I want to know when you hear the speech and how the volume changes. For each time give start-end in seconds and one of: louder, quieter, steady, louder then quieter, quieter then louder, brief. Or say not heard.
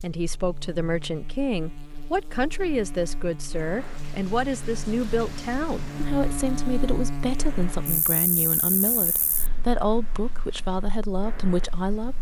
0.0-12.1 steady.